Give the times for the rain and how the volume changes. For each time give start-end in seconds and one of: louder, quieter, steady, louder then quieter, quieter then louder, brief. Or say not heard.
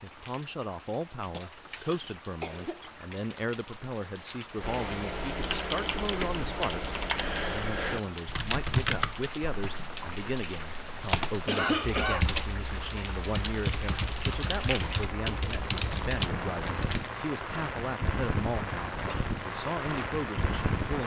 0.0-21.0 louder.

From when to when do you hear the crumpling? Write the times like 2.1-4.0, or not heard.
16.6-17.3.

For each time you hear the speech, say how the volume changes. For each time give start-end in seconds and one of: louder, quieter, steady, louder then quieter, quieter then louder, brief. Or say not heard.
0.0-21.0 steady.